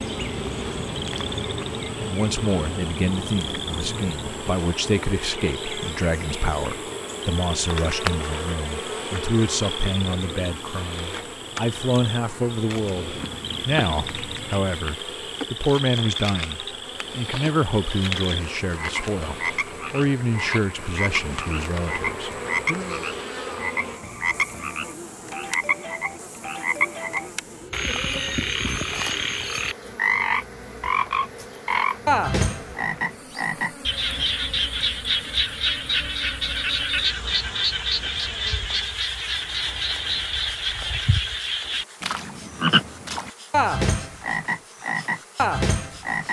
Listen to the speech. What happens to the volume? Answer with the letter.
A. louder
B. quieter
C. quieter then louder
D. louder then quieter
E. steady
E.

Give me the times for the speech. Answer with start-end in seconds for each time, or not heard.
2.0-23.1.